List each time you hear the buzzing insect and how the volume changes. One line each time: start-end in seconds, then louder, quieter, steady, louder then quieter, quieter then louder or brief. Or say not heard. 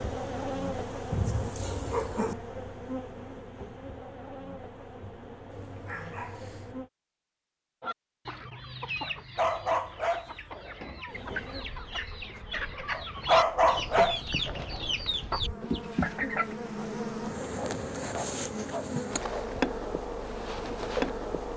0.0-6.9 quieter
11.1-21.5 louder.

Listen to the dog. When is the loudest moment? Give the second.
13 s.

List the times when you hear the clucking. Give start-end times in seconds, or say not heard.
7.8-16.6.